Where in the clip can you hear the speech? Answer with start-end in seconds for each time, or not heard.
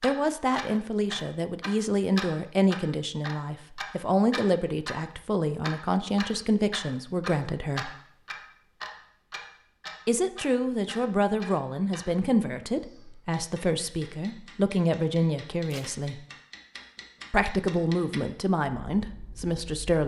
0.0-7.9, 10.1-16.2, 17.3-20.0.